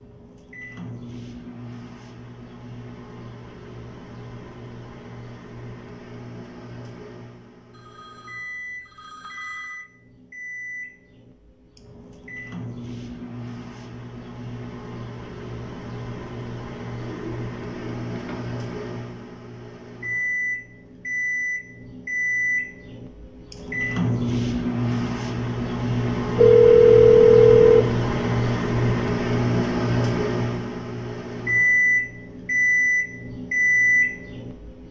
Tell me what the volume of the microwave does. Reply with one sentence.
The loudness of the microwave goes up.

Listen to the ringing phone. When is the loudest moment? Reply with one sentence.
The loudest moment of the ringing phone is at 27 seconds.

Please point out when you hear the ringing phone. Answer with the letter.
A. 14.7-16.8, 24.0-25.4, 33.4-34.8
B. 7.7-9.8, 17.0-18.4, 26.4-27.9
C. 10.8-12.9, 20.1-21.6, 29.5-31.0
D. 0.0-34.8
B.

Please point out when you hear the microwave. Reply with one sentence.
The microwave can be heard from 0.0 to 34.8 s.